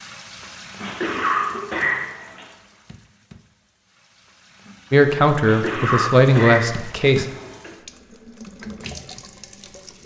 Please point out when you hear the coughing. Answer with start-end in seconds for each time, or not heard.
0.8-2.5, 5.4-7.7.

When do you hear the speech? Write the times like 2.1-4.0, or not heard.
4.9-7.2.